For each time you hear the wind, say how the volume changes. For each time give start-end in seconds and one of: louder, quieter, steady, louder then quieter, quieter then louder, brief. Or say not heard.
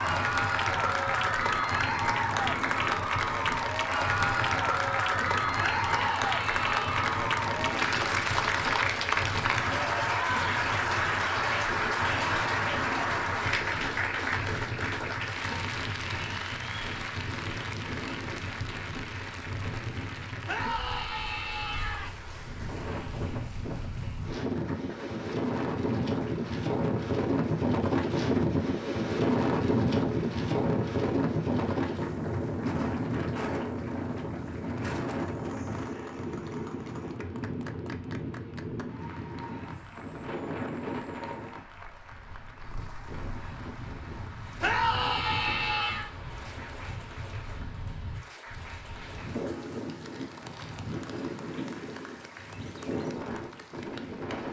0.0-54.4 louder then quieter.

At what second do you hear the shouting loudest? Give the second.
45 s.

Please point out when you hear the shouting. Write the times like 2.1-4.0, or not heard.
5.6-7.0, 20.4-22.1, 44.6-46.1.